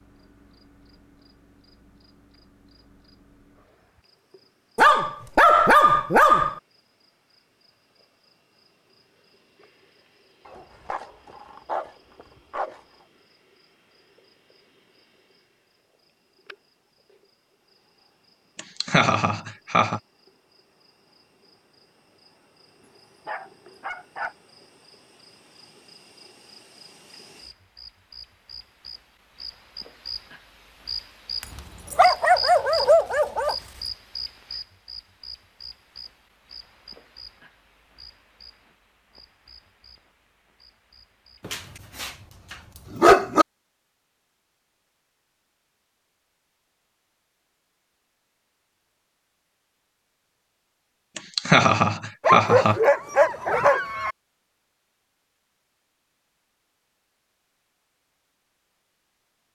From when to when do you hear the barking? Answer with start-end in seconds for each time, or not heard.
4.8-6.6, 10.4-12.8, 23.2-24.4, 31.4-33.5, 41.5-43.5, 52.2-54.1.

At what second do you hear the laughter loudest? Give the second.
52 s.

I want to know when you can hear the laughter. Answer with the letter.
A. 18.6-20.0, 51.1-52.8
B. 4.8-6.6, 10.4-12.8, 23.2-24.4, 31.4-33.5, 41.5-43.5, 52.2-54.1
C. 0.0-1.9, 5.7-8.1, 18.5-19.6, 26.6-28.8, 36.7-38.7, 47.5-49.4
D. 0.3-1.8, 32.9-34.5
A.